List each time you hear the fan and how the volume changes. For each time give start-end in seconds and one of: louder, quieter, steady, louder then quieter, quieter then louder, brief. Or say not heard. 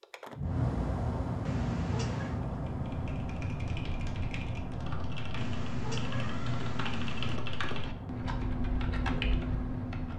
0.0-10.1 quieter.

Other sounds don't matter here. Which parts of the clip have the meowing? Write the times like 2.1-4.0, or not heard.
1.4-2.4, 5.3-7.4.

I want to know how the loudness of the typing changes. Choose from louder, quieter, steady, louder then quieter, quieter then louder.
louder.